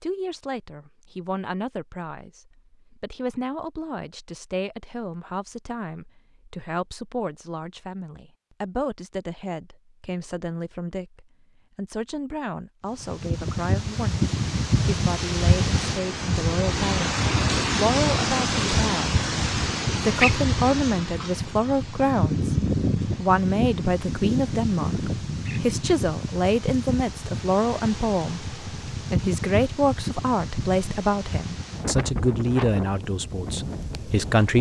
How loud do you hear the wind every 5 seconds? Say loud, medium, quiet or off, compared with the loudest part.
off, off, loud, loud, loud, medium, medium.